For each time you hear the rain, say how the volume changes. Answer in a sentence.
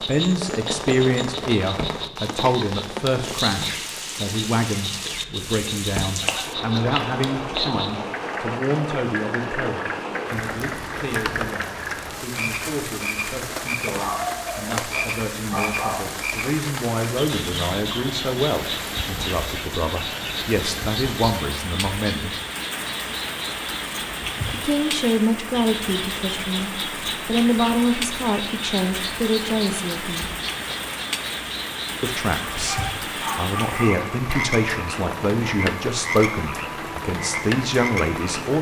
The rain can be heard from 0.0 to 38.5 s, at a steady volume.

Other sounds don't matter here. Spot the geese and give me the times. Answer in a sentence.
You can hear the geese from 6.2 to 7.7 s.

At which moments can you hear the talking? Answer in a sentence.
You can hear the talking from 0.0 to 22.4 s, from 24.4 to 30.3 s and from 32.0 to 38.5 s.